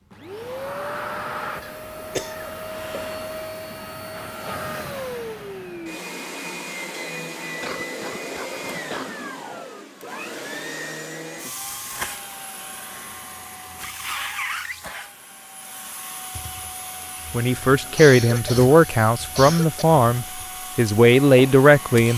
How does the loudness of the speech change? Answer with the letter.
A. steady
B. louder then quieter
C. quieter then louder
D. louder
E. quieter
C.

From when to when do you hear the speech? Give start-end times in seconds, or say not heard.
17.3-22.1.